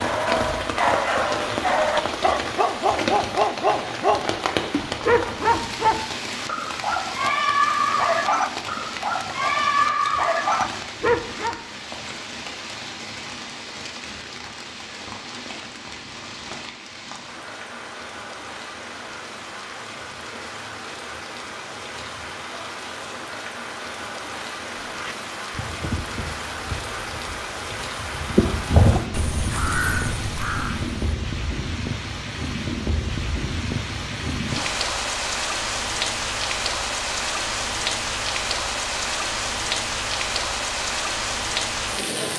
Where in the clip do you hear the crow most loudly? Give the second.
29 s.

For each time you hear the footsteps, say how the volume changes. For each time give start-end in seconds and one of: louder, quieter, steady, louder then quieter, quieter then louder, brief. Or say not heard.
not heard.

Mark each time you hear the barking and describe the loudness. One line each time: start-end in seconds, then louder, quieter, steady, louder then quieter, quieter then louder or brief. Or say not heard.
0.0-11.6 steady.